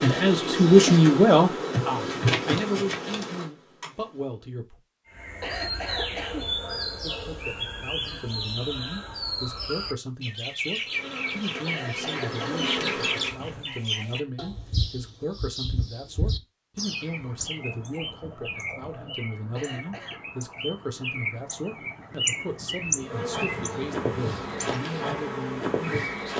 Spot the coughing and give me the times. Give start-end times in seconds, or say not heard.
5.2-6.5, 11.4-12.4, 19.4-20.2.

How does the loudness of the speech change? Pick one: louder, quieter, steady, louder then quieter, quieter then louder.
quieter.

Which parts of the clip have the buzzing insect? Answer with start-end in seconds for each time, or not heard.
0.0-4.5, 10.8-13.8, 22.9-26.3.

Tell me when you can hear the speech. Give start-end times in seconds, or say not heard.
0.0-4.8, 7.0-26.3.